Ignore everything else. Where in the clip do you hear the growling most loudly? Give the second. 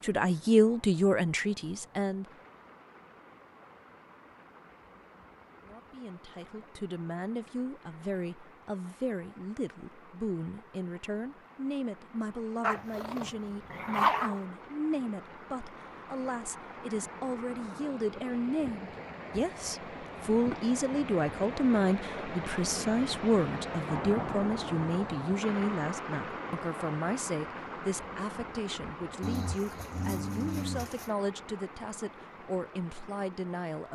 14 s.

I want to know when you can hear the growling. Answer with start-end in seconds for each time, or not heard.
12.6-14.4, 29.2-31.1.